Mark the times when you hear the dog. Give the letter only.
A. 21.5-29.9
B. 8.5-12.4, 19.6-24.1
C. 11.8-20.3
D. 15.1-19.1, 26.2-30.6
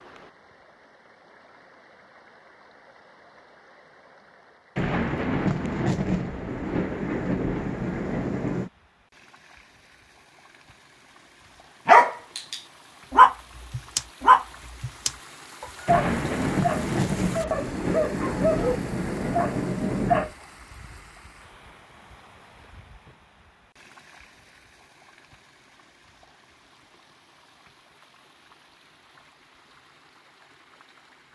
C.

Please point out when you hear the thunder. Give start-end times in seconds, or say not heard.
4.8-8.7, 15.8-20.3.